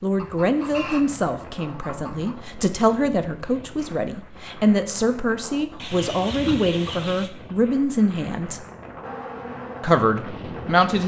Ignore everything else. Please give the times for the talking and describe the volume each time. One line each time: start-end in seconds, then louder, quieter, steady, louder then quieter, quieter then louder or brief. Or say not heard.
0.0-8.6 steady
9.8-11.0 brief.